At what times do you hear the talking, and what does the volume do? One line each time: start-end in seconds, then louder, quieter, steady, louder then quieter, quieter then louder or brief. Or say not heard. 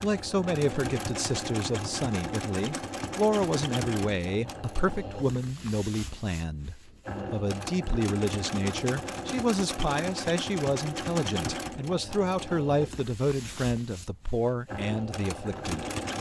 0.0-15.8 steady.